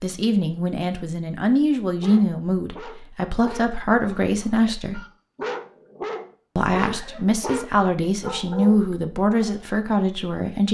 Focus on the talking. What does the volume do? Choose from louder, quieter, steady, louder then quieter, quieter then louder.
steady.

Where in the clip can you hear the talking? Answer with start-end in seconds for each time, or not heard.
0.0-5.0, 6.5-10.6.